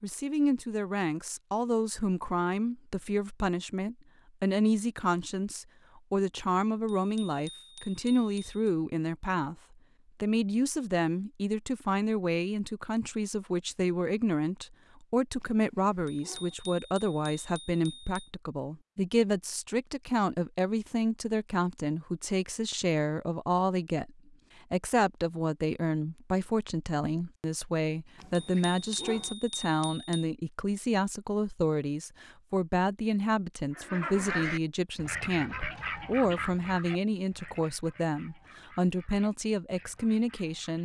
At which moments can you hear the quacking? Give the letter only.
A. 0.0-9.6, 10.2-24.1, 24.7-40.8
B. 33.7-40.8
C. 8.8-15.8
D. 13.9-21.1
B.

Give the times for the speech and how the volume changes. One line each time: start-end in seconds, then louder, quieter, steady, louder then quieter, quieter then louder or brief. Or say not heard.
0.0-9.6 steady
10.2-24.1 steady
24.7-40.8 steady.